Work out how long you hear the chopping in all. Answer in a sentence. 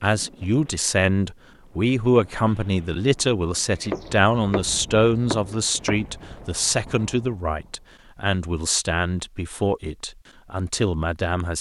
The chopping can be heard for 3 seconds in total.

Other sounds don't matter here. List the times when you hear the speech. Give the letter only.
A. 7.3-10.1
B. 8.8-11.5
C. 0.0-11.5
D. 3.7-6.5
C.